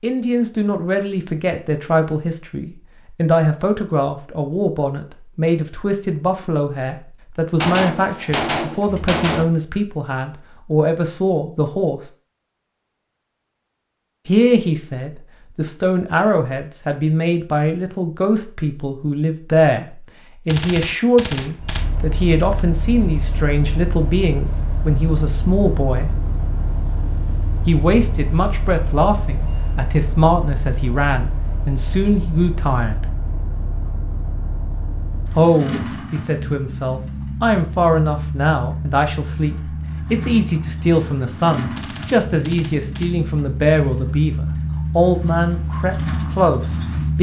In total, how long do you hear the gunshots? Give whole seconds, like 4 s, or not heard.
5 s.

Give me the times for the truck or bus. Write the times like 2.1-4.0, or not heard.
21.6-47.1.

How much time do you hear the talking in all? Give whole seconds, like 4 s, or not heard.
41 s.